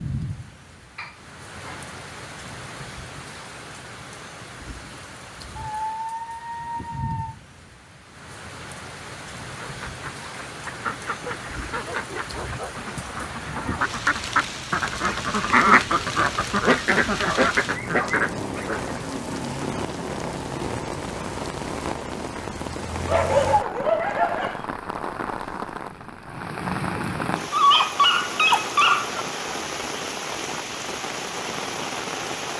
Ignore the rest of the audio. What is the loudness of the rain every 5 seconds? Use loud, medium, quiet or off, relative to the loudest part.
medium, medium, medium, loud, loud, loud, loud.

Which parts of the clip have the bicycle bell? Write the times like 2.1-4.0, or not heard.
not heard.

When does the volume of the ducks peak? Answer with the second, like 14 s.
16 s.